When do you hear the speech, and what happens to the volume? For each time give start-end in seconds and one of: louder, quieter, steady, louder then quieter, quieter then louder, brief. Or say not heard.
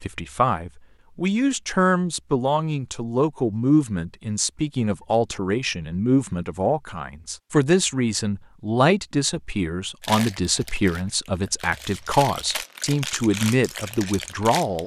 0.0-14.8 steady.